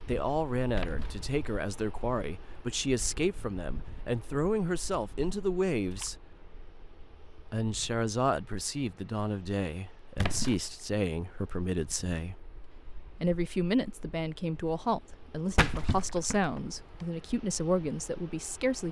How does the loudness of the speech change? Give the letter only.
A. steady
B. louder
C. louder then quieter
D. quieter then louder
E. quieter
A.